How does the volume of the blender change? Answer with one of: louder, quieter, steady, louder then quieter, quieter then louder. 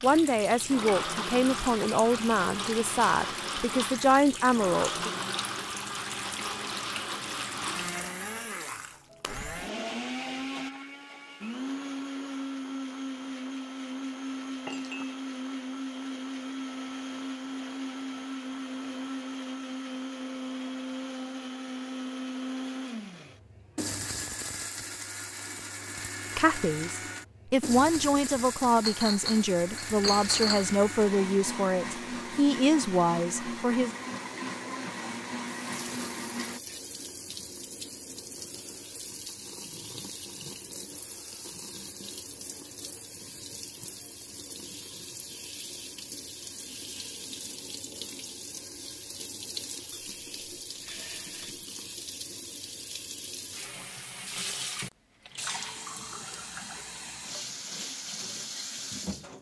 steady.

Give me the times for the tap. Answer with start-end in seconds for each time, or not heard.
0.0-8.2, 35.6-59.3.